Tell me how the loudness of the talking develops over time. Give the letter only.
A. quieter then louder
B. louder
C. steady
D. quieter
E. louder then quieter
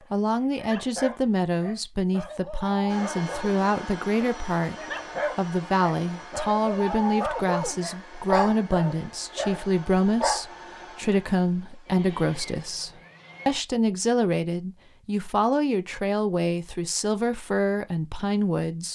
C.